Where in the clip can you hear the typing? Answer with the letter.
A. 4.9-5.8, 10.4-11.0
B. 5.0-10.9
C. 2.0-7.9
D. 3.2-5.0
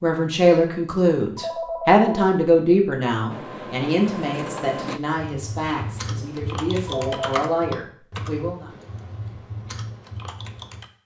B.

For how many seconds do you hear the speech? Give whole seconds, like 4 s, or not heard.
9 s.